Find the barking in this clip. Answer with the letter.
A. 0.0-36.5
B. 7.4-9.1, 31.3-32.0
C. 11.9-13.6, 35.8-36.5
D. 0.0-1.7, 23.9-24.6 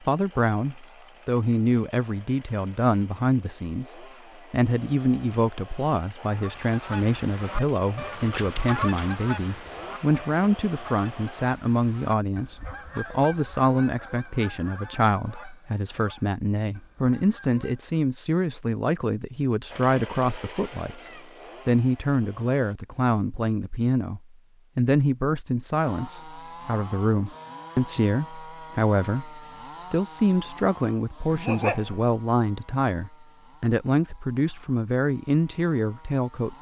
B.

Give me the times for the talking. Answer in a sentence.
You can hear the talking from 0.0 to 36.5 s.